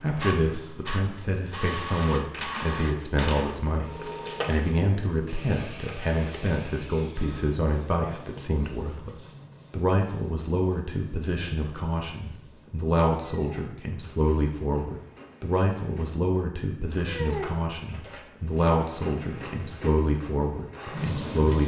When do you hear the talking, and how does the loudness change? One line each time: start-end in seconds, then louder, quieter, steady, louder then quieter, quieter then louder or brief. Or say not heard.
0.0-21.6 steady.